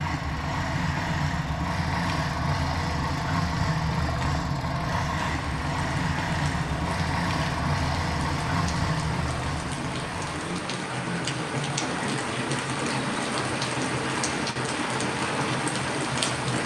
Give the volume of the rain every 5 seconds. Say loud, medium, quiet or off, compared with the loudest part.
off, medium, loud, loud.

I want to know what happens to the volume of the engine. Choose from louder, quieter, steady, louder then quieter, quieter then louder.
quieter.